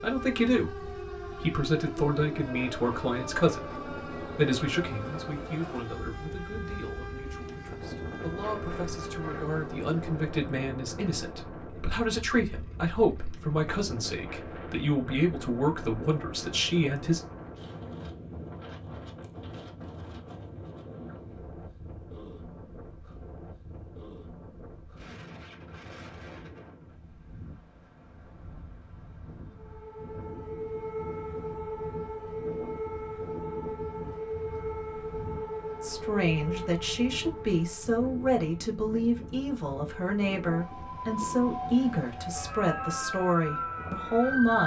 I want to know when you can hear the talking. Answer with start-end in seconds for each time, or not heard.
0.0-17.2, 35.8-44.6.